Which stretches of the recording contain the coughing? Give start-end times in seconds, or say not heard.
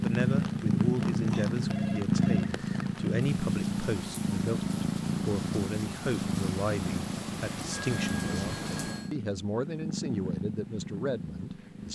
not heard.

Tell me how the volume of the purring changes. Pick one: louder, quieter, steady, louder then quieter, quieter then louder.
quieter.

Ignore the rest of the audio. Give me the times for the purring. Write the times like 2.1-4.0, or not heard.
0.0-11.8.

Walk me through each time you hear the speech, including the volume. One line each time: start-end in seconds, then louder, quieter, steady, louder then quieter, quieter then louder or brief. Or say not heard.
0.0-11.8 steady.